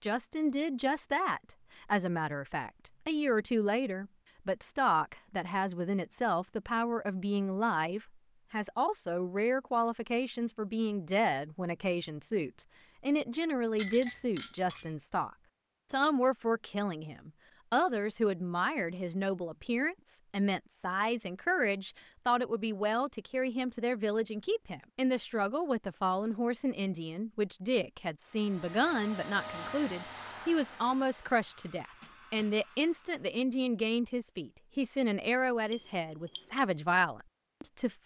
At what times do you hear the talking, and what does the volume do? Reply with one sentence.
The talking can be heard from 0.0 to 15.3 s, at a steady volume; and from 15.9 to 38.0 s, at a steady volume.